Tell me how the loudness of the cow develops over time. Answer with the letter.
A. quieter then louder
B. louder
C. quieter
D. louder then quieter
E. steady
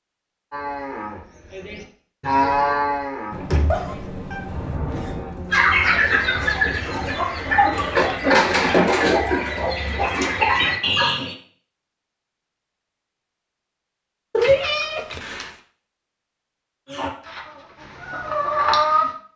D.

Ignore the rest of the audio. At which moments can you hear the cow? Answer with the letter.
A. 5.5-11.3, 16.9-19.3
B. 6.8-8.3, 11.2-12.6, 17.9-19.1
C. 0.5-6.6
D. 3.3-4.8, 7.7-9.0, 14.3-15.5
C.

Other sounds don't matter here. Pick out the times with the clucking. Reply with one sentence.
You can hear the clucking from 5.5 to 11.3 s and from 16.9 to 19.3 s.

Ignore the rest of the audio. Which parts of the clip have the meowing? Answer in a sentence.
The meowing can be heard from 3.3 to 4.8 s, from 7.7 to 9.0 s and from 14.3 to 15.5 s.